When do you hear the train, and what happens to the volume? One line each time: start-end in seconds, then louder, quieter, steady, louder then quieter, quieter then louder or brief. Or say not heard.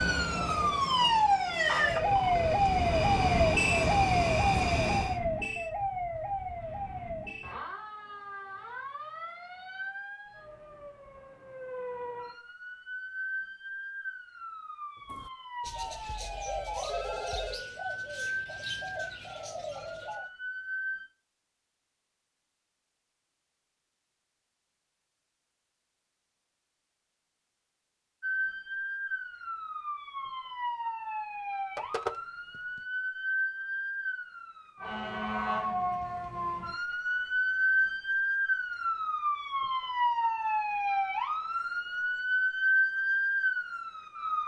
0.0-5.2 louder.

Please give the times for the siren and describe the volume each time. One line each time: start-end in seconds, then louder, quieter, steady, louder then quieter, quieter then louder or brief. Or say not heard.
0.0-21.1 quieter
28.2-44.4 louder.